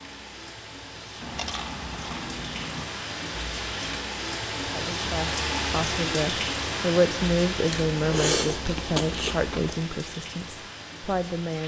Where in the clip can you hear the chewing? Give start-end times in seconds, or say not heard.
1.2-2.9, 7.7-9.8.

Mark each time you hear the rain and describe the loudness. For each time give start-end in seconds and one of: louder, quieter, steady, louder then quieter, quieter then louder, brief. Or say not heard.
0.0-11.6 louder then quieter.